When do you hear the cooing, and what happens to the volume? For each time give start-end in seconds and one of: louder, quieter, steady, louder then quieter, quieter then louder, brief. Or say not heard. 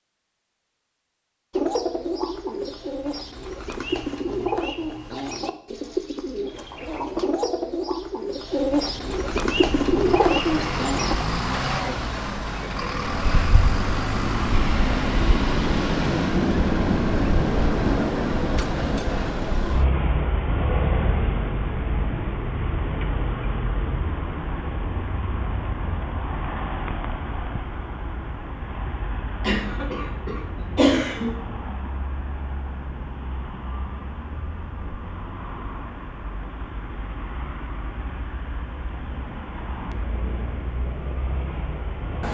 1.5-11.2 louder.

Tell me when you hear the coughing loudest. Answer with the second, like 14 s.
31 s.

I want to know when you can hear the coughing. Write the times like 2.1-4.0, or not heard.
29.4-31.4.